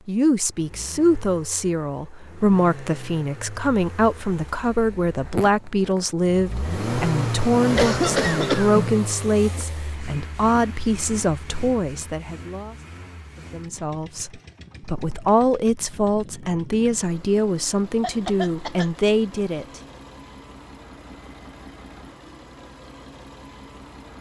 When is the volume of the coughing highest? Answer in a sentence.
The volume of the coughing peaks at 8 seconds.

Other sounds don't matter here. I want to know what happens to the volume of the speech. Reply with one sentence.
The volume of the speech stays about the same.